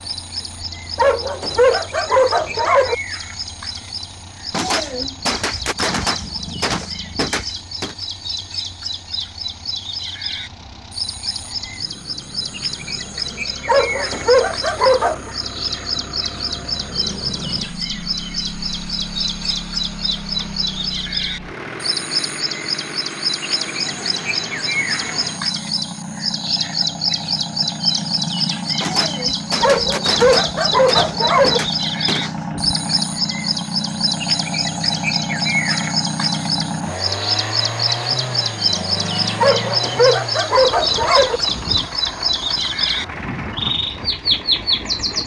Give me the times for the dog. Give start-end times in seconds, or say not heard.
0.9-3.0, 13.7-15.3, 29.6-31.6, 39.4-41.4.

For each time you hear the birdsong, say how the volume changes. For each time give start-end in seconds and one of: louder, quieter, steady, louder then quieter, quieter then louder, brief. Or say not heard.
0.0-45.2 louder.